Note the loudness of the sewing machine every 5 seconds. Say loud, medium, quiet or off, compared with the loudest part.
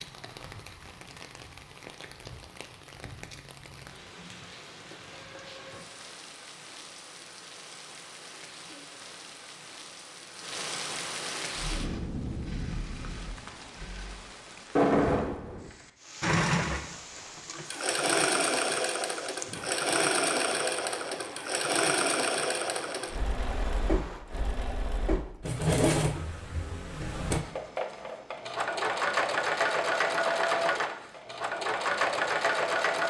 off, off, quiet, loud, loud, loud, loud.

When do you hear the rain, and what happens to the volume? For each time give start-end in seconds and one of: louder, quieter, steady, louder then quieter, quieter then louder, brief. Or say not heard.
0.0-24.2 louder then quieter.